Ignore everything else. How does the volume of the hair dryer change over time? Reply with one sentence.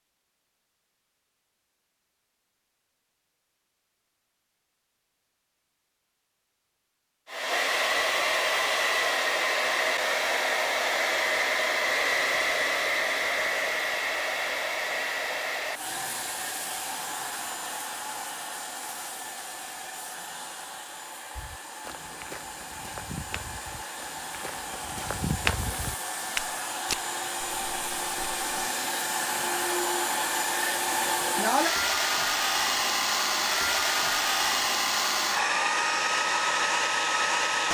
The volume of the hair dryer goes down, then up.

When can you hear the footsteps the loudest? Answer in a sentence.
The volume of the footsteps peaks at 25 seconds.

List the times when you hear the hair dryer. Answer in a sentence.
You can hear the hair dryer from 7.2 to 37.6 s.